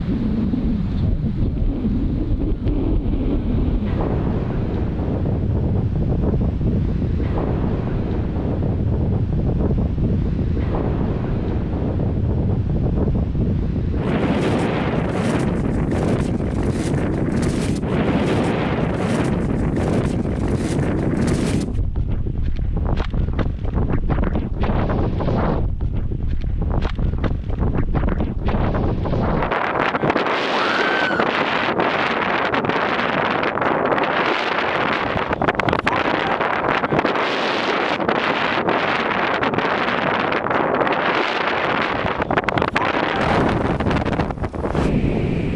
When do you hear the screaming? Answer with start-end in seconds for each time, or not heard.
30.5-31.4.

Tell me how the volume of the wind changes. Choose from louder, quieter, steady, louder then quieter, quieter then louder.
steady.